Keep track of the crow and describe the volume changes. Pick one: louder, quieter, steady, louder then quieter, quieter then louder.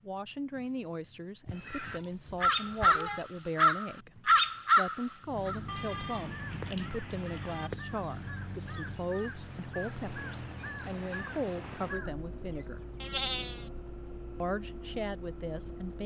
quieter.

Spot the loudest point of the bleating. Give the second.
13 s.